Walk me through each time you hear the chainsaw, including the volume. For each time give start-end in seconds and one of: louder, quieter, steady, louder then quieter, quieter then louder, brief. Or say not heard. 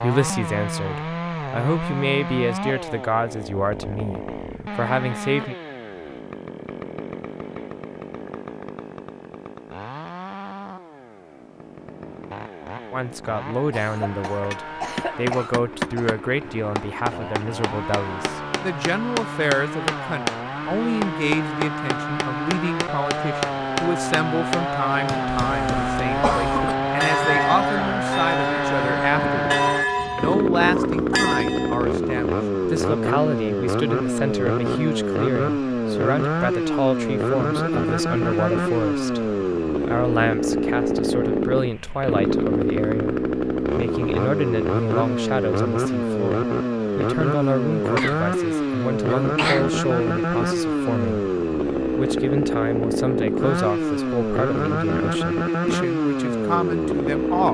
0.0-57.5 louder.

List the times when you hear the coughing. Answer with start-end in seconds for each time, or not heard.
13.7-16.1, 25.4-26.8, 48.0-49.6.